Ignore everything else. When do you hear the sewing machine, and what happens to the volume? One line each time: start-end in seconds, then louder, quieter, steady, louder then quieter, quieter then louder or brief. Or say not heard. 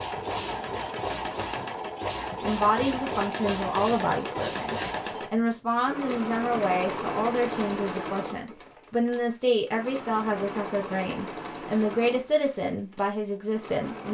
0.0-14.0 quieter.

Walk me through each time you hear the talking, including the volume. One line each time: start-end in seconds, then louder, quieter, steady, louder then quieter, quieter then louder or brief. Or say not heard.
2.4-14.0 steady.